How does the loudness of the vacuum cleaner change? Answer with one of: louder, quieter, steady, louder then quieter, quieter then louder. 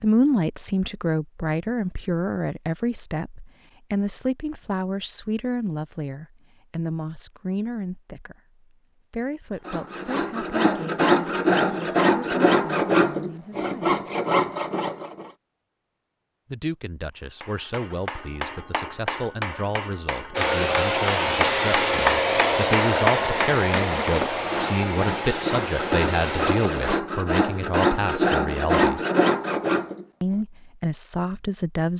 quieter.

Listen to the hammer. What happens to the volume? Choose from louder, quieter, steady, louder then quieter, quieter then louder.
louder.